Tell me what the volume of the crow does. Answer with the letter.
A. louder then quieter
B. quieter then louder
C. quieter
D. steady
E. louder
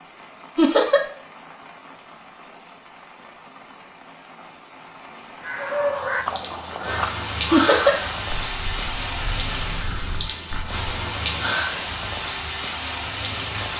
C.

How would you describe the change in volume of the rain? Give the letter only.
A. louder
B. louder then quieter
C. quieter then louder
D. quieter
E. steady
A.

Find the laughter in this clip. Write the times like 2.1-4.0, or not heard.
0.6-1.0, 7.5-8.0.